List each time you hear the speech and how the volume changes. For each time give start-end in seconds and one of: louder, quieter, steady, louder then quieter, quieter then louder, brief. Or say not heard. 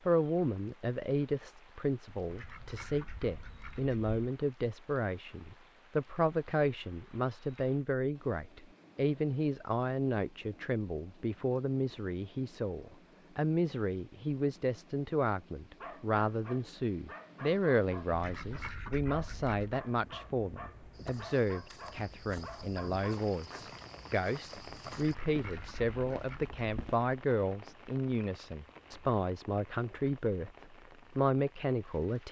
0.1-32.2 steady.